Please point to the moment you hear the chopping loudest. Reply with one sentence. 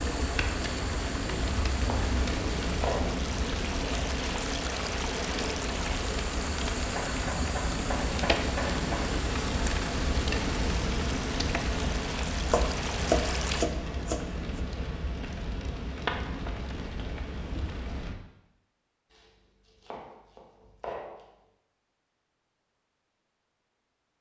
The volume of the chopping peaks at 13 seconds.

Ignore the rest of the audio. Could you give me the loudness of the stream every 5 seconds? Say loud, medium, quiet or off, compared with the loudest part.
loud, loud, loud, off, off.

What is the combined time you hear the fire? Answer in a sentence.
The fire can be heard for 18 seconds in total.